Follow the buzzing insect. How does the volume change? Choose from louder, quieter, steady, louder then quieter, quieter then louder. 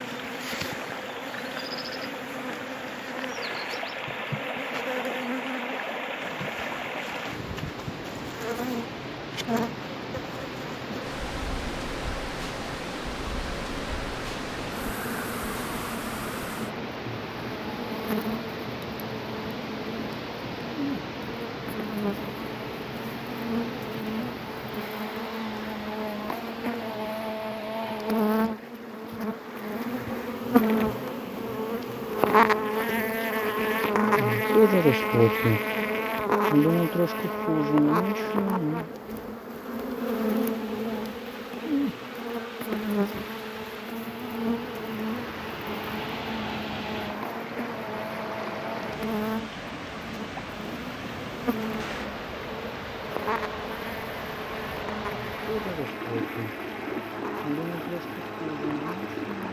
louder then quieter.